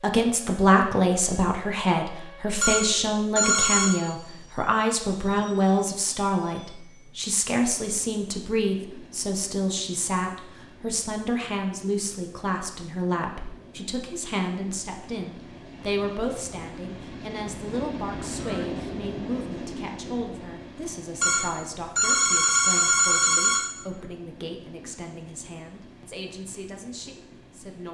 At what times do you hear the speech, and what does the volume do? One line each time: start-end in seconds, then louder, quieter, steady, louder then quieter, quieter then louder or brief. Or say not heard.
0.0-27.9 quieter.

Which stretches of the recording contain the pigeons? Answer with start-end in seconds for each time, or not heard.
not heard.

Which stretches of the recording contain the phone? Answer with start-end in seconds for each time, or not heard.
2.6-4.0, 21.2-23.6.